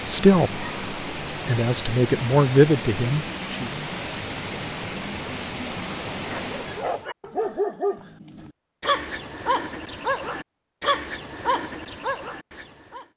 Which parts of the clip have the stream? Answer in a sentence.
The stream can be heard from 0.0 to 7.1 s.